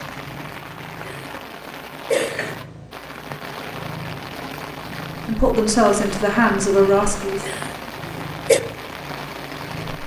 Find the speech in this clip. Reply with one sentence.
The speech can be heard from 5.2 to 7.5 s.